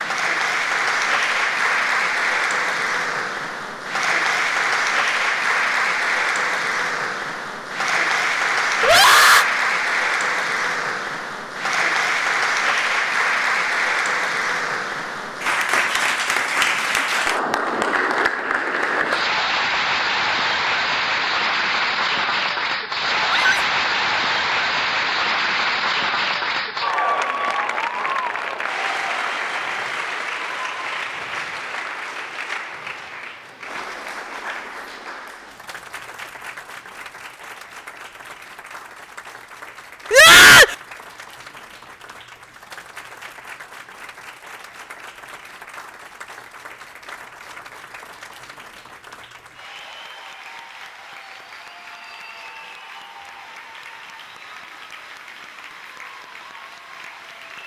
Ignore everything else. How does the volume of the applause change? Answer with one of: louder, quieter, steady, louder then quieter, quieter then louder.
quieter.